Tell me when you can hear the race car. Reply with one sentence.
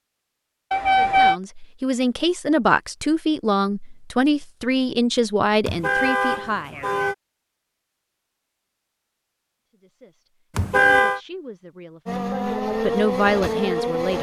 You can hear the race car from 12.1 to 14.1 s.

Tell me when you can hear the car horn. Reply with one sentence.
You can hear the car horn from 0.7 to 1.4 s, from 5.7 to 7.2 s and from 10.6 to 11.2 s.